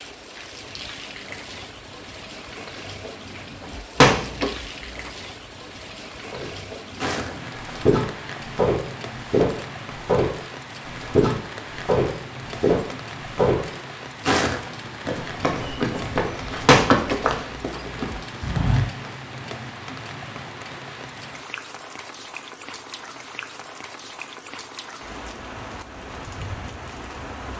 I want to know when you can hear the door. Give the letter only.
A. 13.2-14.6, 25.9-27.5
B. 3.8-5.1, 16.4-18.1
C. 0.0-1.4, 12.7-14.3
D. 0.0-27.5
B.